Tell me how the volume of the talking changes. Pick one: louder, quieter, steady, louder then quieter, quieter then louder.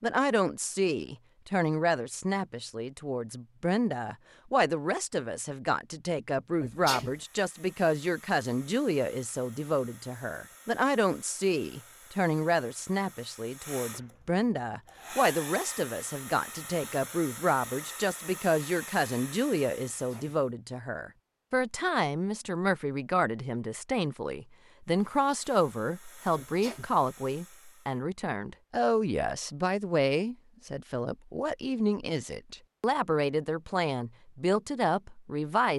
steady.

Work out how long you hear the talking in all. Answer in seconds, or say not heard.
36 s.